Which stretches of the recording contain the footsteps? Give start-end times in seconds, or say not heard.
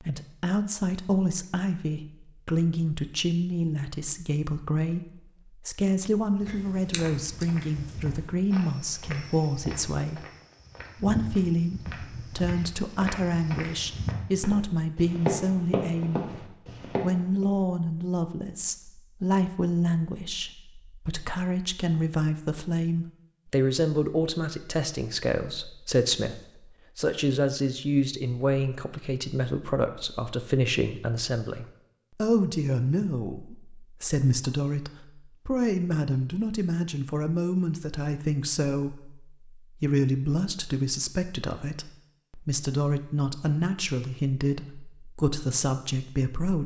6.3-17.4.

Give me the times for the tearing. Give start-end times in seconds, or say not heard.
not heard.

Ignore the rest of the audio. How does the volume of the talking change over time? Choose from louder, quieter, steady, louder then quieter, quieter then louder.
steady.